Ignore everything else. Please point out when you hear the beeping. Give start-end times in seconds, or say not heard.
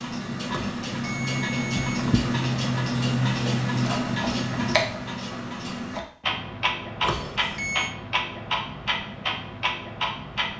0.5-2.2, 7.0-7.9.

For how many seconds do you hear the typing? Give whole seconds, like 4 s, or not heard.
not heard.